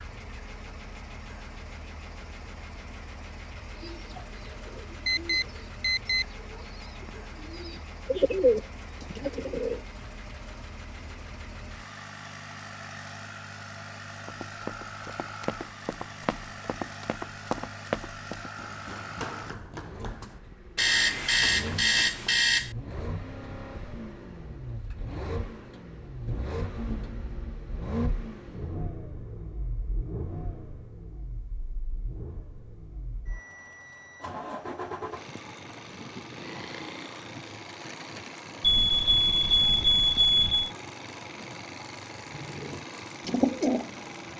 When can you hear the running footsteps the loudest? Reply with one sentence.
The volume of the running footsteps peaks at 18 seconds.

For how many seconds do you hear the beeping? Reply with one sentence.
You can hear the beeping for 5 seconds altogether.